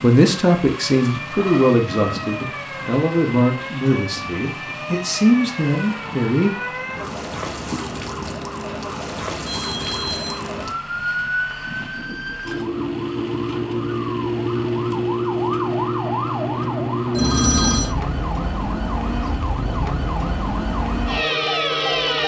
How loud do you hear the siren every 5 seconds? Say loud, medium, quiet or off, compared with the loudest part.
medium, medium, loud, loud, loud.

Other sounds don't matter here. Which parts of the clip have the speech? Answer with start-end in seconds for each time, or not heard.
0.0-6.5.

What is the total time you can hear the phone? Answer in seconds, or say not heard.
2 s.